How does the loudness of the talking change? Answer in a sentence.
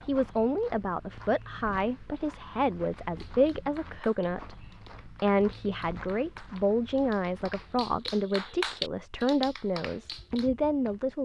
The loudness of the talking stays about the same.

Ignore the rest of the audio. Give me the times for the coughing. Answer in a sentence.
You can't hear the coughing here.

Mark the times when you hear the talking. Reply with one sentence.
You can hear the talking from 0.1 to 11.2 s.